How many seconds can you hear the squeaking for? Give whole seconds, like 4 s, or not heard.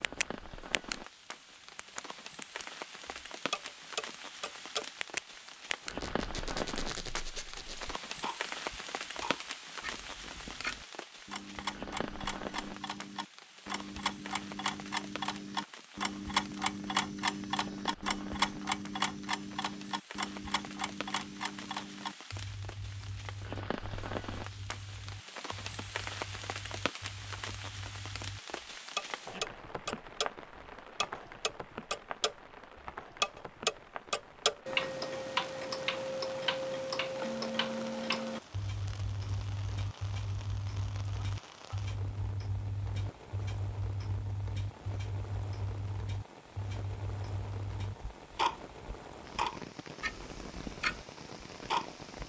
2 s.